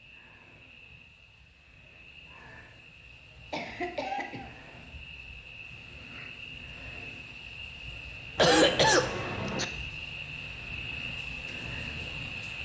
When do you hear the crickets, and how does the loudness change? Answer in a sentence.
You can hear the crickets from 0.0 to 12.6 s, getting louder.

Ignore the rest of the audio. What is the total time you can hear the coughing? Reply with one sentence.
You can hear the coughing for 2 seconds altogether.